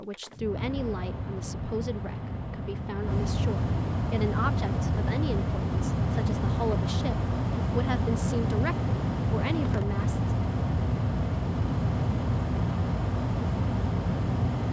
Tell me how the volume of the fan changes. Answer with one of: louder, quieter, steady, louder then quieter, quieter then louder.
louder.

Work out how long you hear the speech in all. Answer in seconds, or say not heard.
10 s.